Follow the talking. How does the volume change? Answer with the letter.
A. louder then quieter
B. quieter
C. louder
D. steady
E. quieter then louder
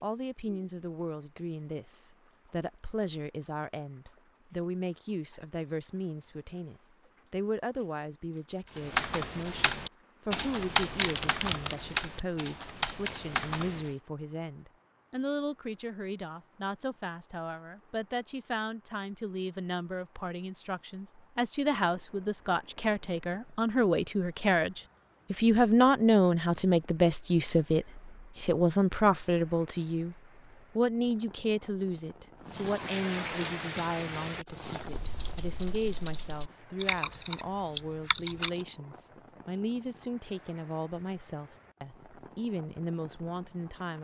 A.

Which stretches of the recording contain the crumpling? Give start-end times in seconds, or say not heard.
11.0-12.0.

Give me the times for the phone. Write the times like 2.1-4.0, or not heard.
not heard.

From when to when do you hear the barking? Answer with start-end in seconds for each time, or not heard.
not heard.